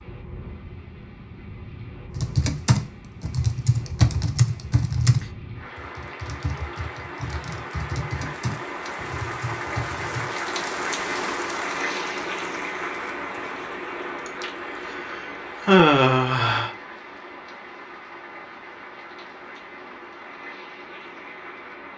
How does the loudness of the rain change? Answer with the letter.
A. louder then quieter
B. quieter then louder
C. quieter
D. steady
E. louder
A.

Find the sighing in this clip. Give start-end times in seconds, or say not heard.
14.2-16.7.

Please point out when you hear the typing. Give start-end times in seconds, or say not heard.
2.1-10.3.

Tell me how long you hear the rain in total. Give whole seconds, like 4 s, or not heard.
22 s.